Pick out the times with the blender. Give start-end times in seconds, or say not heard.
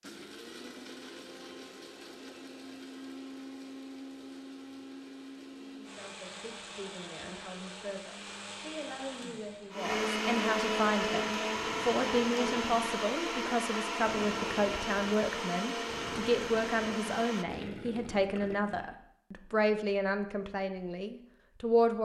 0.0-17.4.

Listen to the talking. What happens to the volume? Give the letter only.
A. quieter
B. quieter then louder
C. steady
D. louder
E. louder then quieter
D.